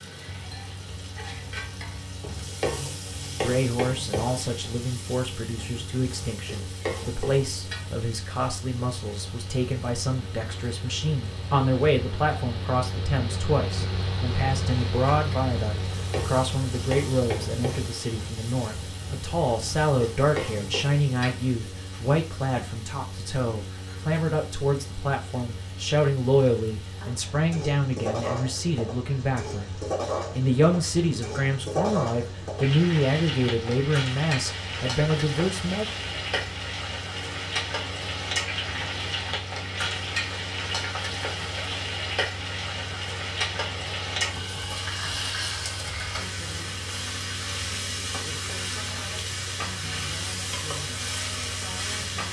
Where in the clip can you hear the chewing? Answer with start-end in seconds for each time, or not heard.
not heard.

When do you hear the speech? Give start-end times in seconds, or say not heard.
3.4-35.9.